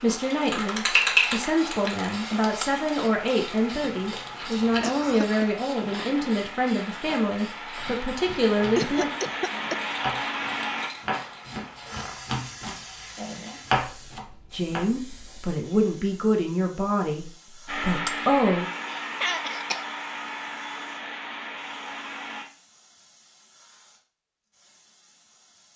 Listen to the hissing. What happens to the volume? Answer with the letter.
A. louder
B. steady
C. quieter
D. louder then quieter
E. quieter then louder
C.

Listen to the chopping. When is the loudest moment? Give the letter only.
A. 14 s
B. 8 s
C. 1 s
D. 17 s
A.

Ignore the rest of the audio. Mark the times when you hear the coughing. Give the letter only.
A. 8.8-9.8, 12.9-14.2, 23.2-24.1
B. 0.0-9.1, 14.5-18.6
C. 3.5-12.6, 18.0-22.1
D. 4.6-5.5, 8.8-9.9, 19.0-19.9
D.